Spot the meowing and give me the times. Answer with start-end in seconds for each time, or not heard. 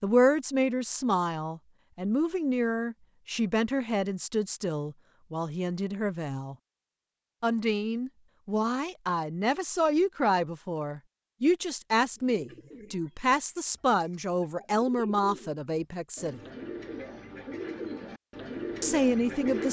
not heard.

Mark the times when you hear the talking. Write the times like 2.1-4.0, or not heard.
0.0-6.5, 7.4-16.4, 18.8-19.6.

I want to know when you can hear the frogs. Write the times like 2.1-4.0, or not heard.
not heard.